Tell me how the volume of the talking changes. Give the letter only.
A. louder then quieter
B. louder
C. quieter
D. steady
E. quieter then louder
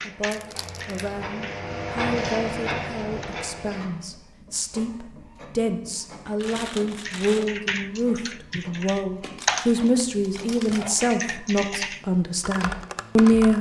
B.